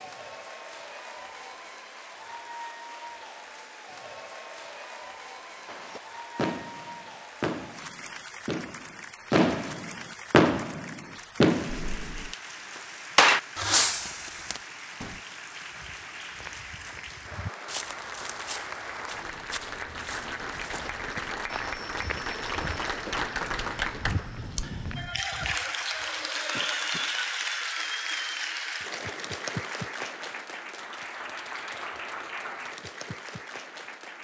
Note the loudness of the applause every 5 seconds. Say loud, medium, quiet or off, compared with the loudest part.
medium, medium, medium, medium, loud, loud, medium.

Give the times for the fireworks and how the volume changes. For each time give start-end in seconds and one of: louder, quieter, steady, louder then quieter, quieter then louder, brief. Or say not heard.
5.7-12.3 louder
13.2-15.2 brief.